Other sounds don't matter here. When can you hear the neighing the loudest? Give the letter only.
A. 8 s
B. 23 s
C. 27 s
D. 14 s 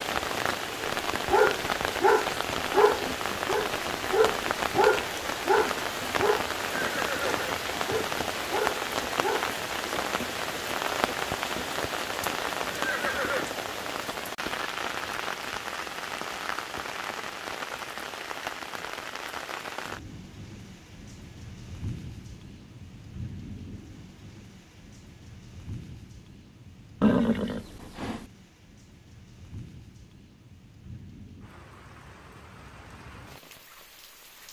C.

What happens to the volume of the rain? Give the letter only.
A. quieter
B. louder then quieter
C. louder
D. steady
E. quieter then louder
A.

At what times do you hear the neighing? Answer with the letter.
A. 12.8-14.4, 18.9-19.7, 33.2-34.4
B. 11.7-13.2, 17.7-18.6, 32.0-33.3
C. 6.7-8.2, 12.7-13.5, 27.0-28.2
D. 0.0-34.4
C.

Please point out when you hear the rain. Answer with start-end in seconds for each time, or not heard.
0.0-34.4.